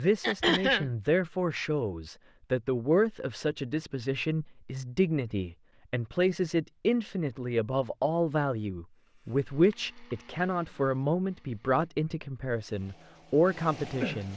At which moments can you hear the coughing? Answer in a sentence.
The coughing can be heard from 0.2 to 0.9 s and from 9.6 to 10.2 s.